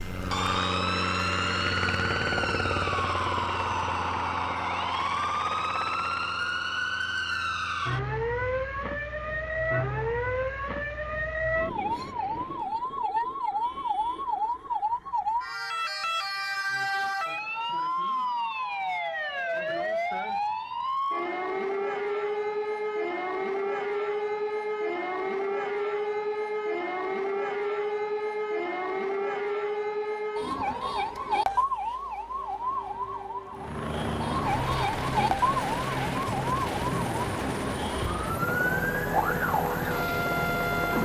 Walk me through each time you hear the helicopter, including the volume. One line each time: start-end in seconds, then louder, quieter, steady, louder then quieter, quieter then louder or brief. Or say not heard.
0.0-12.8 quieter
33.5-41.0 steady.